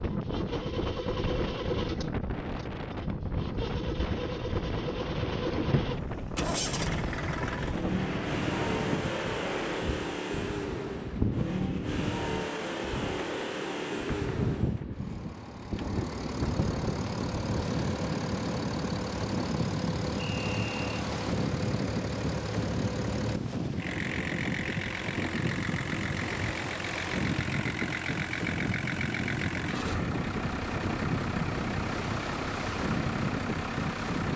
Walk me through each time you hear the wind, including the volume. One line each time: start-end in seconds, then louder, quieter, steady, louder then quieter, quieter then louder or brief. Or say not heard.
0.0-34.3 steady.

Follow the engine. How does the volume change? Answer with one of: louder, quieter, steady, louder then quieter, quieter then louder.
steady.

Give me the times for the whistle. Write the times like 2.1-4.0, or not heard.
20.1-21.1.